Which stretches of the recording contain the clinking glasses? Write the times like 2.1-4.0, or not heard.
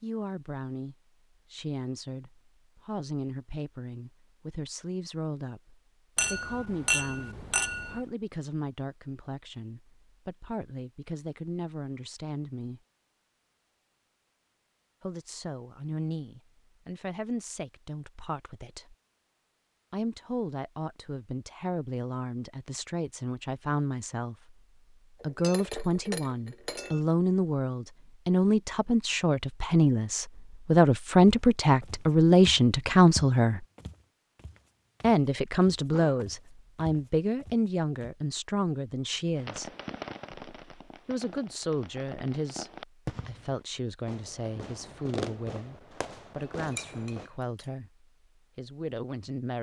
6.2-8.1, 25.2-27.0, 46.6-47.6.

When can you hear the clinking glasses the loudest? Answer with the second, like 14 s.
7 s.